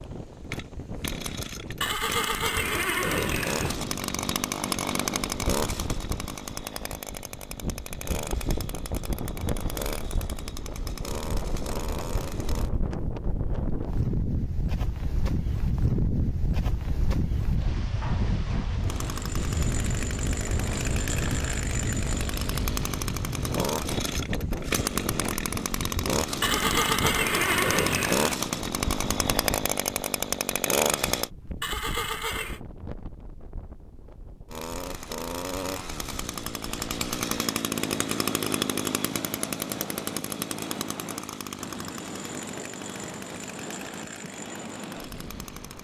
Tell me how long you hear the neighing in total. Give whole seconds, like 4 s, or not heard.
5 s.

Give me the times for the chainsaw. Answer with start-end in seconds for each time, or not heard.
0.0-12.7, 18.8-31.3, 34.5-45.8.